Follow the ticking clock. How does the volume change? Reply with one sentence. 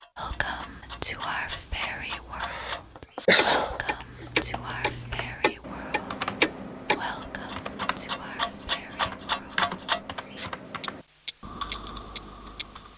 The loudness of the ticking clock goes up.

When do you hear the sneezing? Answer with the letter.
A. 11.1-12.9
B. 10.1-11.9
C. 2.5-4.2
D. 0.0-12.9
C.